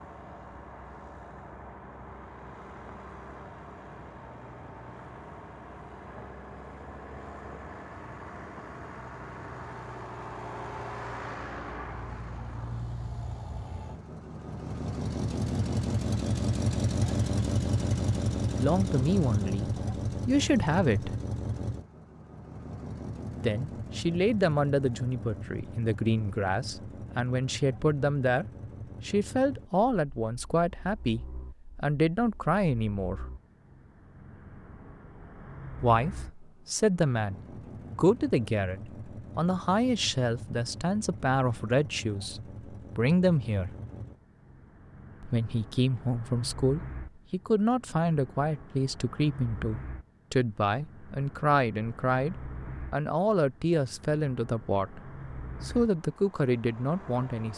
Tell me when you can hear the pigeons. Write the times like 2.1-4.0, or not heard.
not heard.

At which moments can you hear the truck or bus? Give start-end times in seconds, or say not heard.
0.0-57.5.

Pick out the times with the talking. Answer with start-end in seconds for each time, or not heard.
18.6-21.1, 23.4-28.4, 29.1-33.2, 35.8-43.7, 45.2-57.5.